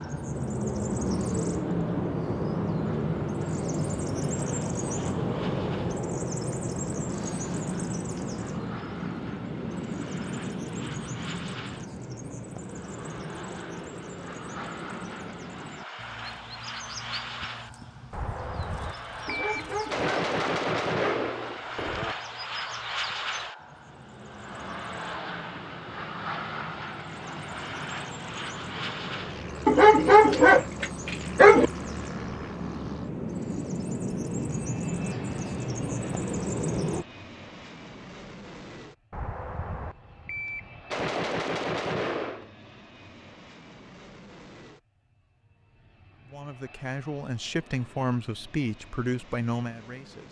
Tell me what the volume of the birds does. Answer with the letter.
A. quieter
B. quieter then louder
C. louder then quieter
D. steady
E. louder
B.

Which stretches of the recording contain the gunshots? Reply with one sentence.
You can hear the gunshots from 18.1 to 22.1 s and from 39.1 to 42.5 s.